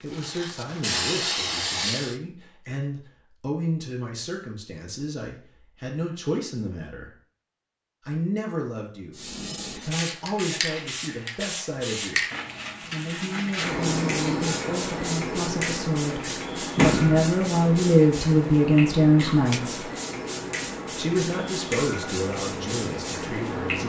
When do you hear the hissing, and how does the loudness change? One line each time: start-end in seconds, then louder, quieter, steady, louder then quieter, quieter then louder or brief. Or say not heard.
0.1-2.2 brief
9.1-23.8 steady.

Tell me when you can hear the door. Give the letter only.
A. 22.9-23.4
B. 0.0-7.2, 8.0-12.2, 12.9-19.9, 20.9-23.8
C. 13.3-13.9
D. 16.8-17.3
D.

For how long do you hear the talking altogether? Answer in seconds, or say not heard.
21 s.